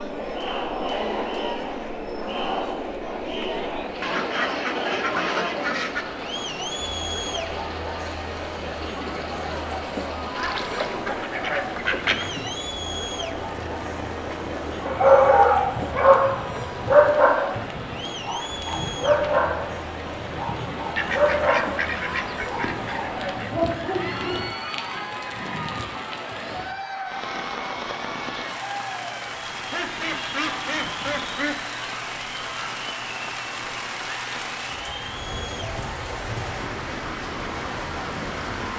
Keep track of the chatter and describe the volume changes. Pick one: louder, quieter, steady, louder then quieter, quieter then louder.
quieter.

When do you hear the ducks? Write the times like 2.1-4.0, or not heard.
4.0-6.0, 10.3-12.5, 20.9-23.6, 29.7-31.6.